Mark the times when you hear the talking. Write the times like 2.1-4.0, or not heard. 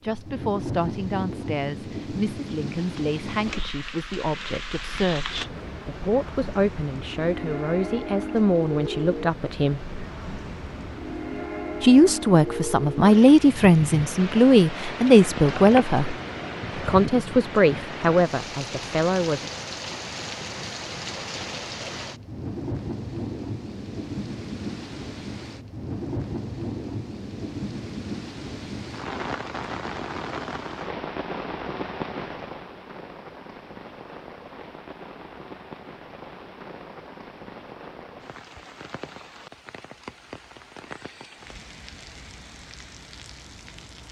0.0-9.9, 11.8-16.1, 16.8-19.5.